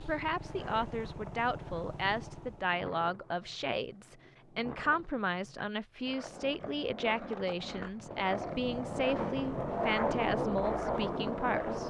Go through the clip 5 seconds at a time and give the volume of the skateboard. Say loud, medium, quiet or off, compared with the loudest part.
quiet, medium, loud.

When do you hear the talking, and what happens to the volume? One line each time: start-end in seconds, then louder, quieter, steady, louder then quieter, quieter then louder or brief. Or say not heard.
0.0-11.8 steady.